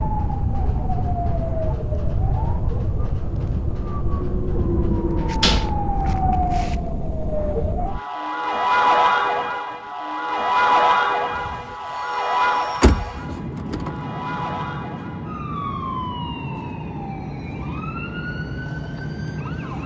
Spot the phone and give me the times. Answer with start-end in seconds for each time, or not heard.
not heard.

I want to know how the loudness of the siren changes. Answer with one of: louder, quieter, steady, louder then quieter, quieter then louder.
louder then quieter.